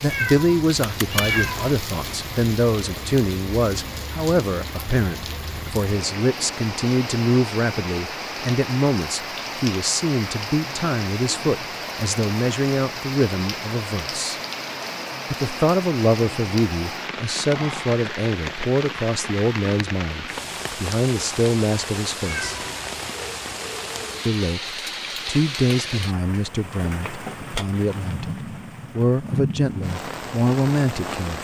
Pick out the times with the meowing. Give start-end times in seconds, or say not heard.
0.1-1.8, 22.2-22.9.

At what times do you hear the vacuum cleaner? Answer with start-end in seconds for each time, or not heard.
not heard.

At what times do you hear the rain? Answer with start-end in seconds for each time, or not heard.
0.0-31.3.